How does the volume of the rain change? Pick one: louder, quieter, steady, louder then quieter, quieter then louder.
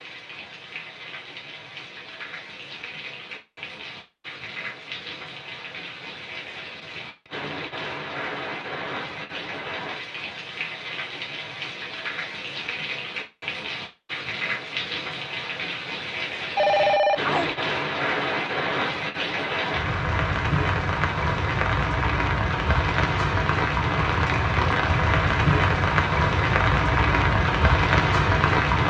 louder.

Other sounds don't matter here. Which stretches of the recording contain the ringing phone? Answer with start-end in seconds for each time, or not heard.
16.6-17.6.